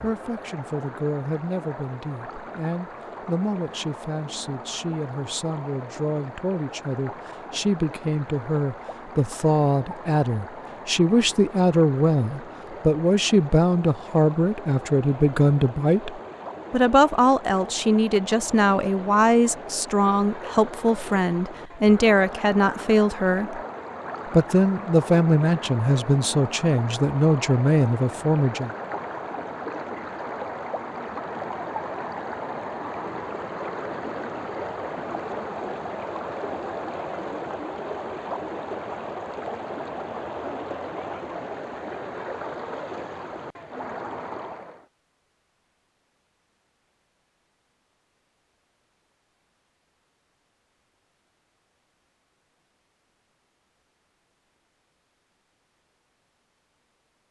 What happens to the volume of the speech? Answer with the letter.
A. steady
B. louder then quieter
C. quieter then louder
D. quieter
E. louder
E.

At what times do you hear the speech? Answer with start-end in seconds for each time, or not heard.
0.0-23.6, 24.3-28.7.